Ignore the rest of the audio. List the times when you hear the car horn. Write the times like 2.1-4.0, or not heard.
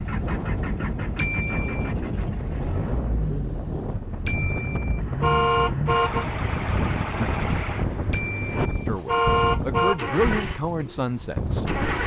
1.1-1.9, 4.2-6.2, 8.1-10.1.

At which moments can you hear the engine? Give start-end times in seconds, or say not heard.
0.0-12.0.